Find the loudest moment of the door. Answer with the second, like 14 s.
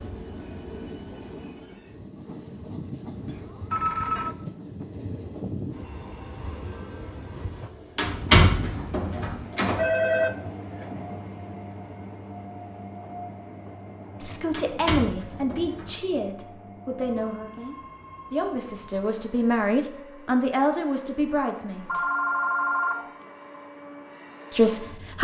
8 s.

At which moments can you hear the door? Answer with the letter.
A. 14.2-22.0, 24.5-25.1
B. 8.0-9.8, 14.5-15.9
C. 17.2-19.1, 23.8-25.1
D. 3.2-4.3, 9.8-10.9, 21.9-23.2
B.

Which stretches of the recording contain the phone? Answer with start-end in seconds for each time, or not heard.
3.2-4.3, 9.8-10.9, 21.9-23.2.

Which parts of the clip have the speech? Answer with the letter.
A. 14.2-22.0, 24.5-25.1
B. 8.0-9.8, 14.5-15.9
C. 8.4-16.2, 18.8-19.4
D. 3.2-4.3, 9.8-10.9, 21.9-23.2
A.